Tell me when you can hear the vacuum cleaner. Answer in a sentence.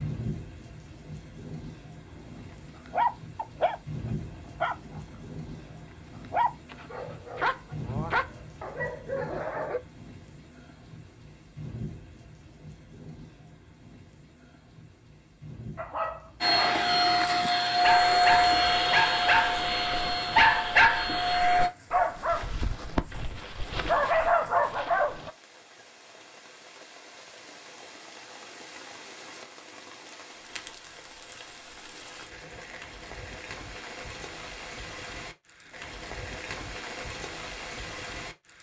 The vacuum cleaner can be heard from 16.4 to 21.7 s.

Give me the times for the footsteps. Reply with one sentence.
The footsteps can't be heard in this clip.